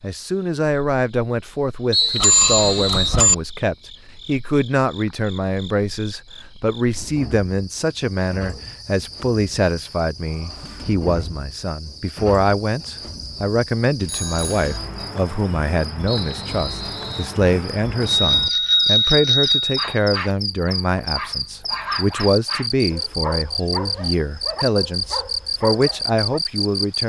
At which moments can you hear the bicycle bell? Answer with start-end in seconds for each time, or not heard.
2.2-3.4, 14.0-14.7, 18.1-19.8.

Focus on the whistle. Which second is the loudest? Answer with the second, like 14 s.
2 s.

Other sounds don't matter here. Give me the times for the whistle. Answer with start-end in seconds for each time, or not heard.
1.9-3.2, 16.1-17.4.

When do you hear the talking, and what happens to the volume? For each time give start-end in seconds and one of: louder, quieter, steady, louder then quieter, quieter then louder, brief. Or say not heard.
0.0-27.0 steady.